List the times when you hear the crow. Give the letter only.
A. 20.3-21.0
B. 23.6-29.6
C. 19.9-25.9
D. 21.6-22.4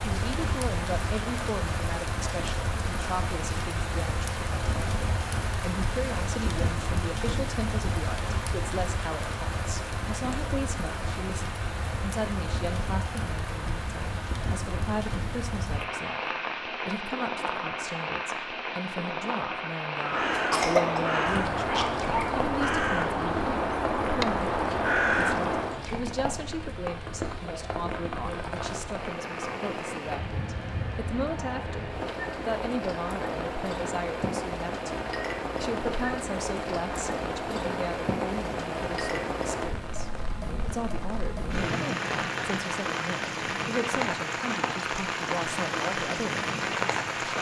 C.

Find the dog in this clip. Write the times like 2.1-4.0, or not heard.
21.6-22.4.